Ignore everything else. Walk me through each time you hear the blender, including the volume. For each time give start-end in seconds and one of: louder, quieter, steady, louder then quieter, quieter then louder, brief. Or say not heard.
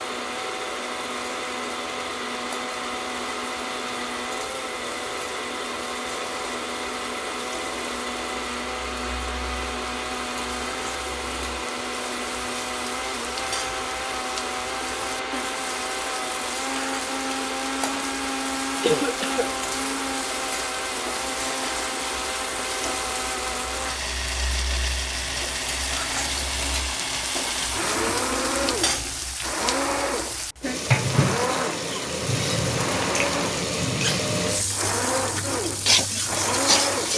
0.0-37.1 steady.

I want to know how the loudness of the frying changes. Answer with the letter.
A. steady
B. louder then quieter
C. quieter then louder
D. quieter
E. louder
E.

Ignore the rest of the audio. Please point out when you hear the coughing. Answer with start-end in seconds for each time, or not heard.
18.8-19.5.